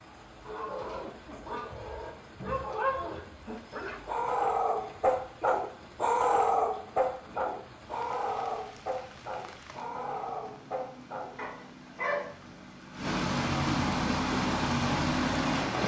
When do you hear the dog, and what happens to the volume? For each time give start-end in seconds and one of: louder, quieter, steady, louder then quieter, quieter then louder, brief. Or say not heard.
0.4-12.3 louder then quieter.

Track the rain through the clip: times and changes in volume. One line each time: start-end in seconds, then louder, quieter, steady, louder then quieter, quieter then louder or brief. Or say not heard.
0.0-15.8 louder.